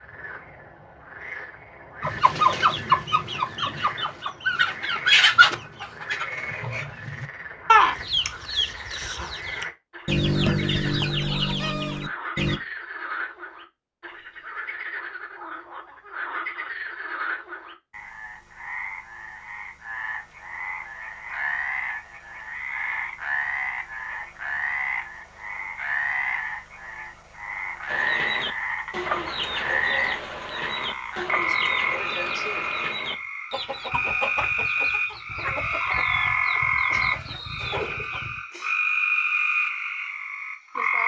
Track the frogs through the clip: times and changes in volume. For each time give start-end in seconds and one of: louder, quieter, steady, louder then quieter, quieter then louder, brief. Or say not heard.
0.0-41.0 louder.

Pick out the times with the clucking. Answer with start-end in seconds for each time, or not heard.
2.0-12.6, 27.9-38.4.